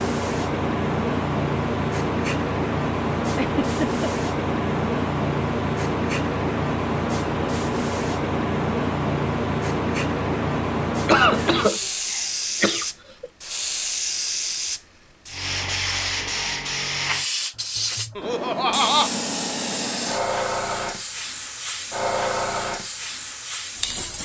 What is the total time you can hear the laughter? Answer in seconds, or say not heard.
4 s.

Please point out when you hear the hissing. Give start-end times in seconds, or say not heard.
0.0-24.2.